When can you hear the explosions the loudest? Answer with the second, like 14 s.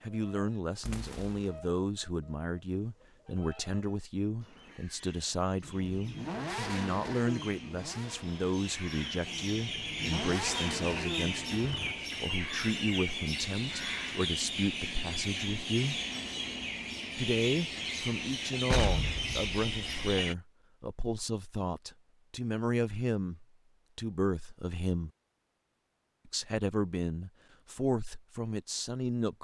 19 s.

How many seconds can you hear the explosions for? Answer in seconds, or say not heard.
2 s.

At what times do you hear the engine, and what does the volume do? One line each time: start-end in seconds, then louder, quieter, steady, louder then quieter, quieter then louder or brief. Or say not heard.
5.6-11.9 quieter then louder.